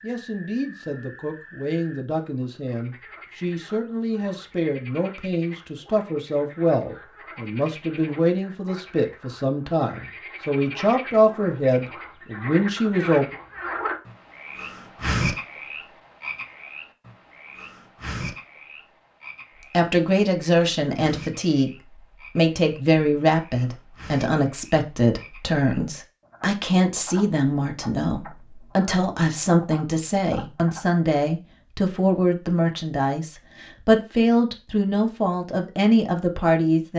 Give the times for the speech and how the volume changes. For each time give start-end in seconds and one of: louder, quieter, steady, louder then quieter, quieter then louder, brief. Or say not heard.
0.0-13.3 louder
19.7-36.9 steady.